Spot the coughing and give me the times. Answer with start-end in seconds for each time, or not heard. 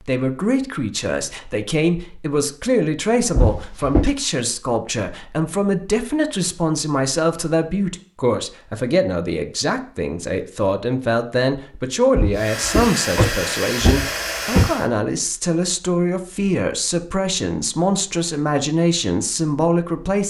not heard.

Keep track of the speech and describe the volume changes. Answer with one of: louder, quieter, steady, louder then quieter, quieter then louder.
steady.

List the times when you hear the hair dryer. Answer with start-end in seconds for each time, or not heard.
12.3-14.9.